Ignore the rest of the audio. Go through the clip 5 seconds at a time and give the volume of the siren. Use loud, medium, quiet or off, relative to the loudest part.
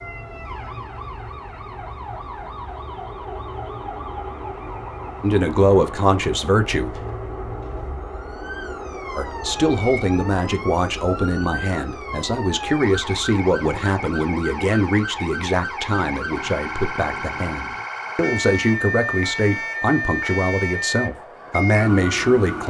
medium, medium, medium, loud, loud.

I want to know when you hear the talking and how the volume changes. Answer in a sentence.
You can hear the talking briefly from 5.2 to 7.0 s; and from 9.2 to 22.6 s, at a steady volume.